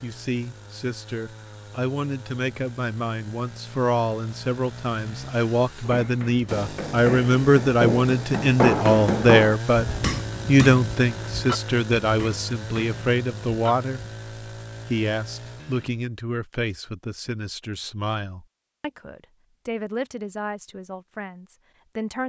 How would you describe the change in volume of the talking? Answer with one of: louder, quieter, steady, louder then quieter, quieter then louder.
louder then quieter.